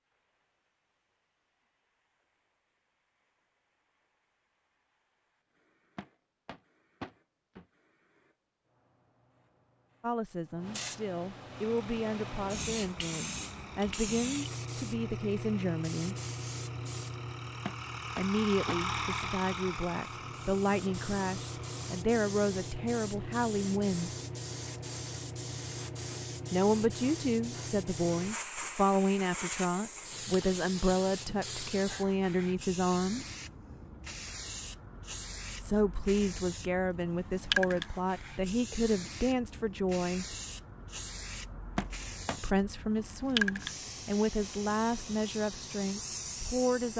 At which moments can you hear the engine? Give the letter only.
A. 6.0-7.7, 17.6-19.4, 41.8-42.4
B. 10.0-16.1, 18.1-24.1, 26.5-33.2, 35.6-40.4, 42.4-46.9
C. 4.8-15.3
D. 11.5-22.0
D.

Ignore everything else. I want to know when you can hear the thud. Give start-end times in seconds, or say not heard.
6.0-7.7, 17.6-19.4, 41.8-42.4.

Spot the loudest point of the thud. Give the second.
42 s.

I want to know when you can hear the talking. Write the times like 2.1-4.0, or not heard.
10.0-16.1, 18.1-24.1, 26.5-33.2, 35.6-40.4, 42.4-46.9.